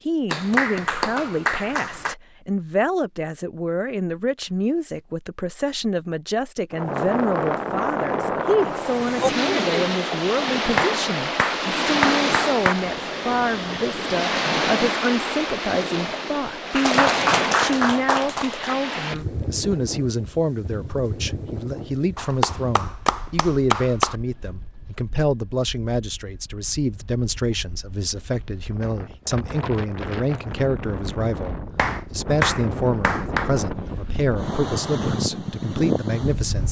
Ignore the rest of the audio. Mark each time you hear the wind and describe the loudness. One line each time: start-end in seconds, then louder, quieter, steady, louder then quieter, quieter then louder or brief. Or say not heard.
6.7-36.6 quieter then louder.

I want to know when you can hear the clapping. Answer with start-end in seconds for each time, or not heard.
0.3-2.1, 10.8-12.8, 16.8-18.8, 22.1-24.1, 31.8-33.5.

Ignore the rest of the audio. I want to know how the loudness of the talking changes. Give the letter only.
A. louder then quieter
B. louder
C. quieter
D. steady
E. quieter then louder
D.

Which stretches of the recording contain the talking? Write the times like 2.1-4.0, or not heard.
0.1-36.6.